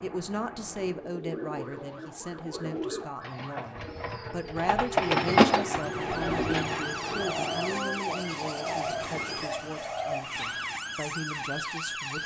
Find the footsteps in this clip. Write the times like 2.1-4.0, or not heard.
not heard.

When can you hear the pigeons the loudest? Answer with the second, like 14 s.
5 s.